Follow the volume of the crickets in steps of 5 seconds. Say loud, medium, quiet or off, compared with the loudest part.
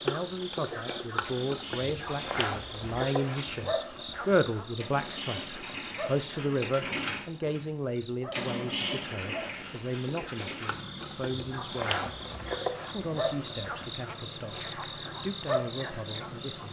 loud, medium, loud, loud.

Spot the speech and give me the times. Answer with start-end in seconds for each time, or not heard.
0.0-12.1, 12.9-16.6.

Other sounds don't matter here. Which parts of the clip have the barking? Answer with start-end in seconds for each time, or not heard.
not heard.